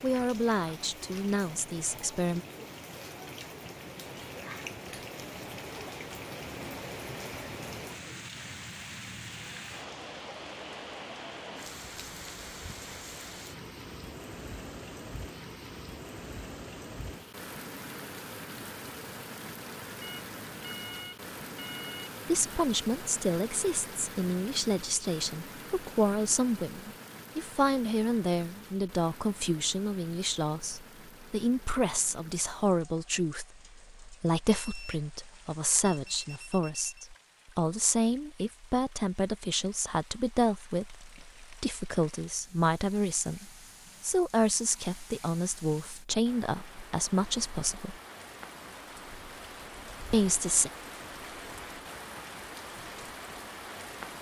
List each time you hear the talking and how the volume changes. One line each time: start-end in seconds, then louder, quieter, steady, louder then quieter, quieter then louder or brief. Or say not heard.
0.0-2.5 brief
22.2-48.0 steady
50.1-50.7 brief.